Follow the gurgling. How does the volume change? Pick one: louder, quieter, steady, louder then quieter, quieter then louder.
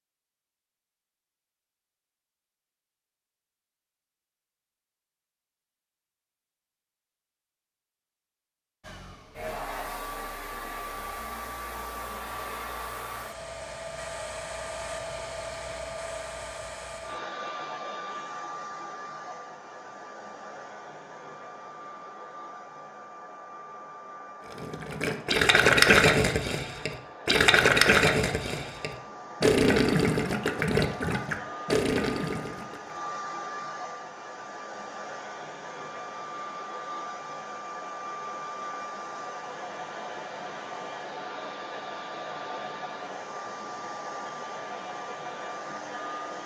quieter.